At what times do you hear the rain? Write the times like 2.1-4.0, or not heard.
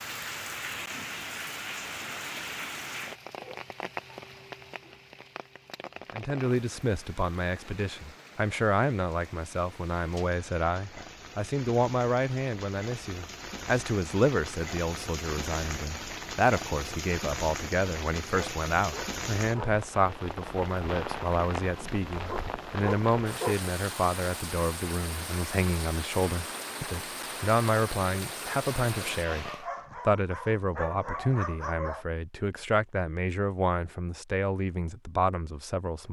0.0-29.6.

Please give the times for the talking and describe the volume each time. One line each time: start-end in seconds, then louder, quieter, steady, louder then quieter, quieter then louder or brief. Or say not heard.
6.1-36.0 steady.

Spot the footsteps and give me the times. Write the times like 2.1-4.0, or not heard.
not heard.